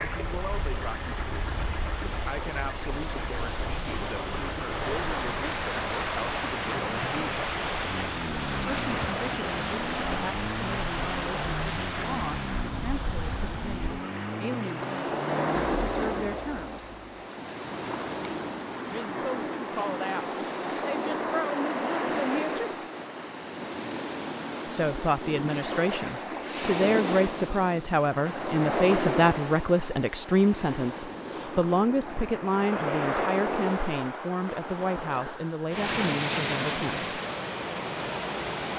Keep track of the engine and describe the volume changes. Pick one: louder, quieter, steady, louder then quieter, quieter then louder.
steady.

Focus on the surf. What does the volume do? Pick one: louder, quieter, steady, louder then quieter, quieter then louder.
steady.